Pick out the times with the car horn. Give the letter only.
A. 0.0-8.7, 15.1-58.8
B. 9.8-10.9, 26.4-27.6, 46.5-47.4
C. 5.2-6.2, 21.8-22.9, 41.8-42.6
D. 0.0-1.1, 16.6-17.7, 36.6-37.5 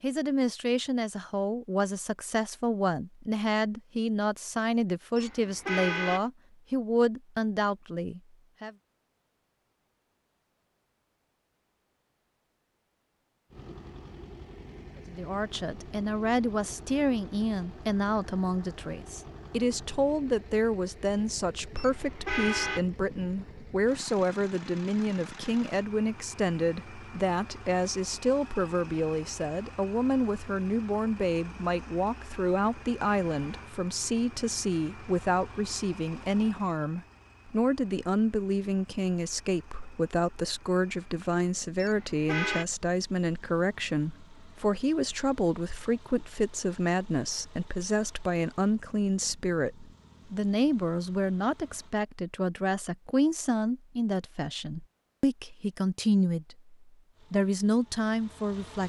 C.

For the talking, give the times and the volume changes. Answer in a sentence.
The talking can be heard from 0.0 to 8.7 s, at a steady volume; and from 15.1 to 58.8 s, at a steady volume.